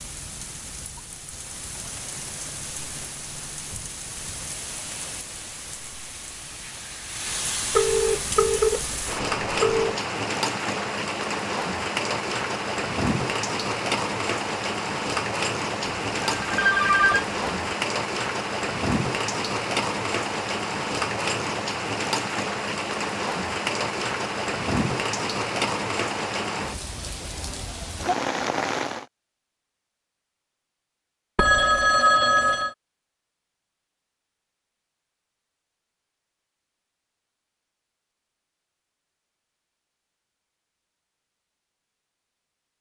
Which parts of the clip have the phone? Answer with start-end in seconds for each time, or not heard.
7.7-9.9, 15.8-17.7, 31.4-32.8.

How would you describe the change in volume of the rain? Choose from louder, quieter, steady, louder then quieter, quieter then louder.
louder.